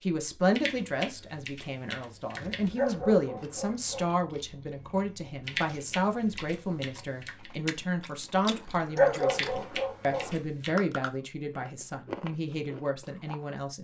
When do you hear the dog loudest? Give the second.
9 s.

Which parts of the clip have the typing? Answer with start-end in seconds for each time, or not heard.
0.6-2.8, 5.5-7.5, 9.2-10.8.